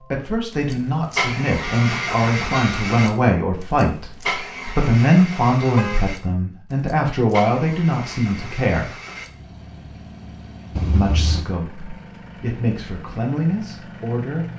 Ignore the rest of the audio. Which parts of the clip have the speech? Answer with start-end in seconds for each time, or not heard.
0.1-8.9, 10.8-14.4.